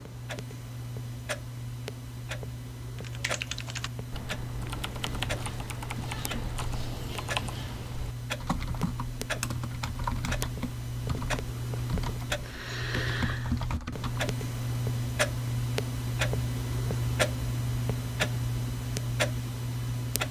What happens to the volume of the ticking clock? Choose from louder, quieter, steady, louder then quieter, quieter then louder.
louder.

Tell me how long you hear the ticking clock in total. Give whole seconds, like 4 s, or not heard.
20 s.